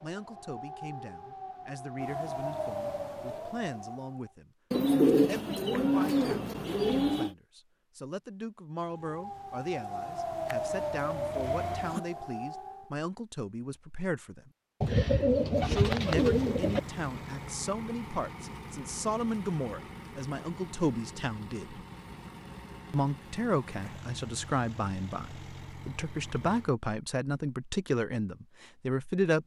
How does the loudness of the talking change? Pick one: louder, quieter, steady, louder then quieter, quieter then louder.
louder.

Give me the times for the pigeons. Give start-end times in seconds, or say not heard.
4.7-7.3, 14.8-16.8.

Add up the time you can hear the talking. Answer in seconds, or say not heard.
27 s.